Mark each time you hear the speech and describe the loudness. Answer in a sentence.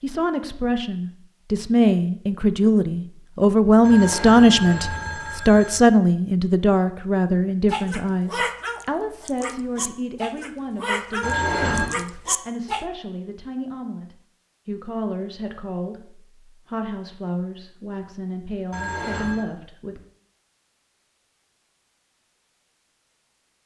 You can hear the speech from 0.0 to 20.0 s, getting quieter.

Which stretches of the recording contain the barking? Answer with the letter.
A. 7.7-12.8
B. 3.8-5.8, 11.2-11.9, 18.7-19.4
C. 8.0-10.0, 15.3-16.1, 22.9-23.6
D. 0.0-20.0
A.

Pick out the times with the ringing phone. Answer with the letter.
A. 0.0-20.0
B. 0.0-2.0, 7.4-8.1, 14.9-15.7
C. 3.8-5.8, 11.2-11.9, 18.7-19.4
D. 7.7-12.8
C.